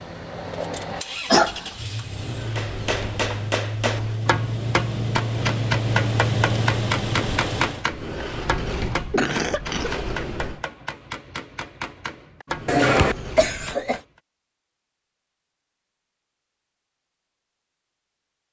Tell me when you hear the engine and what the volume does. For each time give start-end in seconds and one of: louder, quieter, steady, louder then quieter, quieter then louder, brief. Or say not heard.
0.0-7.8 louder.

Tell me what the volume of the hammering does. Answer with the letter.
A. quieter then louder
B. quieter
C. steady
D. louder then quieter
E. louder
B.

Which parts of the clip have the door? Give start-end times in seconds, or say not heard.
2.1-4.2, 7.9-10.7, 12.4-13.8.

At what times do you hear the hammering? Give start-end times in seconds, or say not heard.
2.5-14.1.